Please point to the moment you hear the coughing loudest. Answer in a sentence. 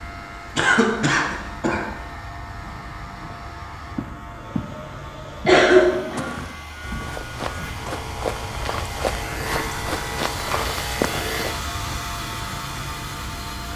The loudest moment of the coughing is at 6 seconds.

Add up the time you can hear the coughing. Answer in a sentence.
The coughing can be heard for 3 seconds in total.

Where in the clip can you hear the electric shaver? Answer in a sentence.
The electric shaver can be heard from 0.0 to 13.7 s.